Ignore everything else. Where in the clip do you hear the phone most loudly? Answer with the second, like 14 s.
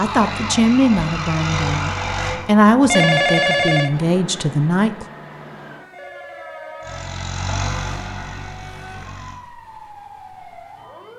3 s.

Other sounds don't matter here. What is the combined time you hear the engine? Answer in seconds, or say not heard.
5 s.